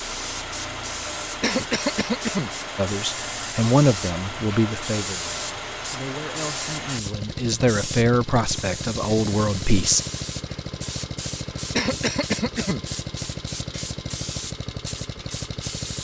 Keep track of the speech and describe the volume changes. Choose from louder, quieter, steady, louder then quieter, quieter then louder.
quieter then louder.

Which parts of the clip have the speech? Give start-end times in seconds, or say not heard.
2.8-10.0.